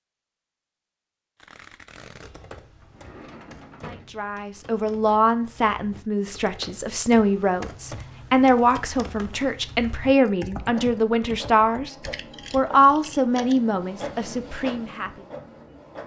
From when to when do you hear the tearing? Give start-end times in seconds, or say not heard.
1.4-2.4.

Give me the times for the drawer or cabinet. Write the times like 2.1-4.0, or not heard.
2.8-4.3.